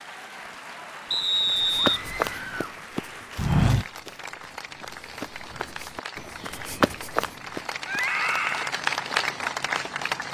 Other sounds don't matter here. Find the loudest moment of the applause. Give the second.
9 s.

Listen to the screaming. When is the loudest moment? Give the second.
8 s.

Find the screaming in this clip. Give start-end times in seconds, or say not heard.
1.8-2.8, 7.8-8.7.